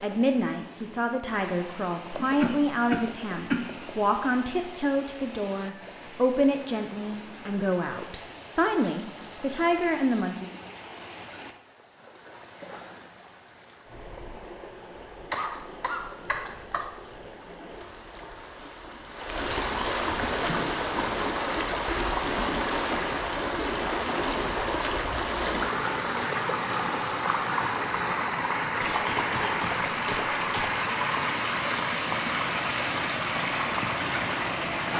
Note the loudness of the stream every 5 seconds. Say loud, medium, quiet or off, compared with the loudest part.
quiet, quiet, quiet, medium, loud, loud, loud.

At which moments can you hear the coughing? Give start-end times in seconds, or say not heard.
2.1-4.0, 15.3-17.3, 28.8-30.7.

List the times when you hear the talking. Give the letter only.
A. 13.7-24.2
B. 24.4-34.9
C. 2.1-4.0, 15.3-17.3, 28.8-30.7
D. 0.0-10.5
D.